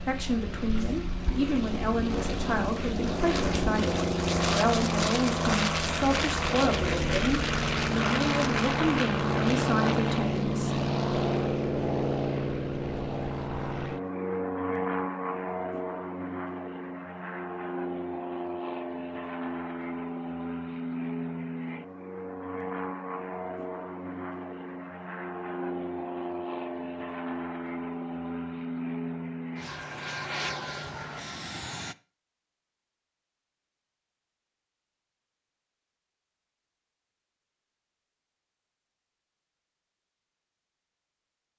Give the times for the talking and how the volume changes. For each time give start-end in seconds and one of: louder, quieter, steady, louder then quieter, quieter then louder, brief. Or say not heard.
0.0-10.8 steady.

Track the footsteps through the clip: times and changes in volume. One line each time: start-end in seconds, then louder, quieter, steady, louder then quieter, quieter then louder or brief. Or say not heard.
not heard.